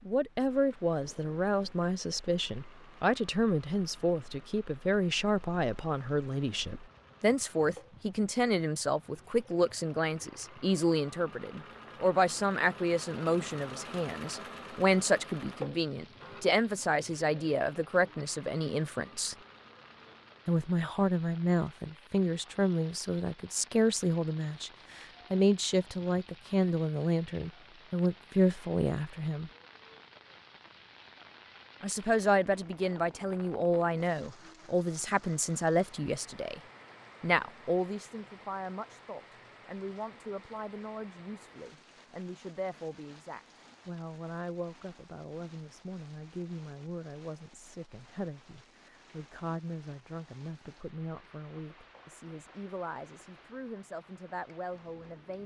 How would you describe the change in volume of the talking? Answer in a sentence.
The loudness of the talking goes down.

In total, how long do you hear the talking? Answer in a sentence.
You can hear the talking for 51 seconds altogether.